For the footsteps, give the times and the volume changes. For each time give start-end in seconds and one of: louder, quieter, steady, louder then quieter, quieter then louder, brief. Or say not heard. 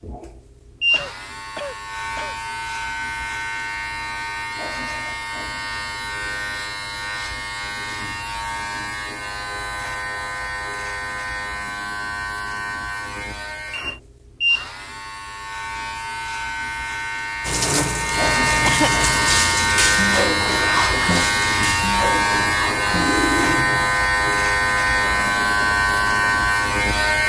not heard.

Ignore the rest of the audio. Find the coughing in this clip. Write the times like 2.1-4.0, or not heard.
0.9-2.4, 18.6-19.1.